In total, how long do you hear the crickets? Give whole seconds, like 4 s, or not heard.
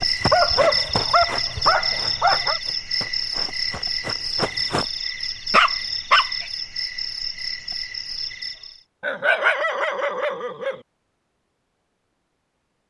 9 s.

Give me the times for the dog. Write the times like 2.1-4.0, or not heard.
0.3-2.6, 5.5-6.5, 9.0-10.8.